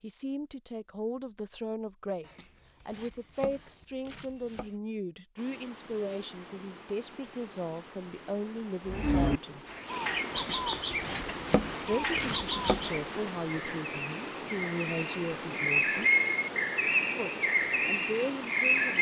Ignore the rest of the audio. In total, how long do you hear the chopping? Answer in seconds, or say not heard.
5 s.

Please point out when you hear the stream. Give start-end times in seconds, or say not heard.
5.3-18.9.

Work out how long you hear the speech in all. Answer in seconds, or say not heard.
16 s.